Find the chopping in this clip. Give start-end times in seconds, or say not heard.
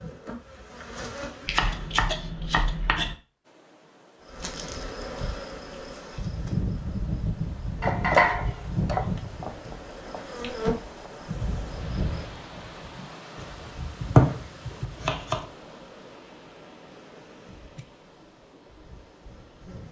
1.4-3.1, 7.8-10.2, 13.3-15.4.